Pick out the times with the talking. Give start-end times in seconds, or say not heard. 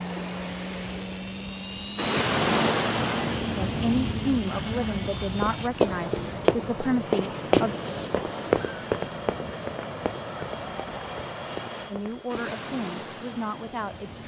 3.5-7.8, 11.9-14.2.